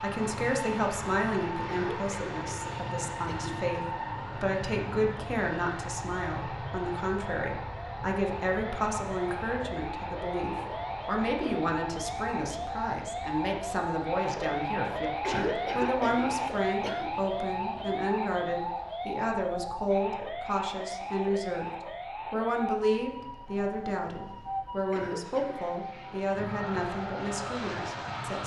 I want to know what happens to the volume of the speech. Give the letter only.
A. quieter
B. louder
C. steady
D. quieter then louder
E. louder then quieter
C.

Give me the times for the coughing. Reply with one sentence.
The coughing can be heard from 1.6 to 3.5 s, from 15.2 to 17.1 s and from 24.9 to 25.6 s.